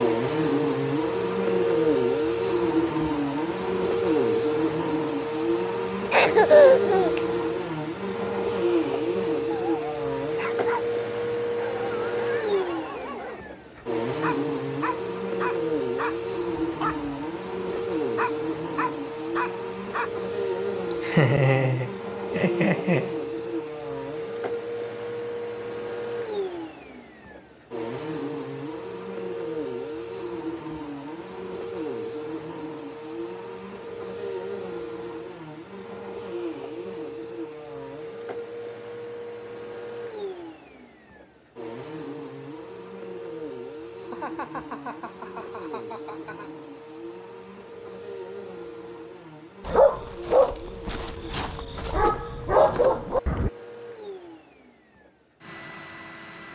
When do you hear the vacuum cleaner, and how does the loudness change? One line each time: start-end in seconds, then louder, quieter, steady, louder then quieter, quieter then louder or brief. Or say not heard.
0.0-56.5 quieter.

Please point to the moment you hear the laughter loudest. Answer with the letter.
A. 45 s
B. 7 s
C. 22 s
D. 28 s
B.